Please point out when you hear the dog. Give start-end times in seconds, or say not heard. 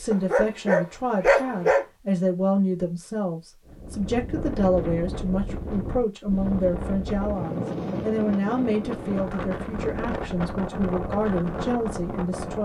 0.1-1.9.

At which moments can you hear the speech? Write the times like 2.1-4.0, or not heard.
0.0-12.5.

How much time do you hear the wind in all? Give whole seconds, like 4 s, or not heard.
9 s.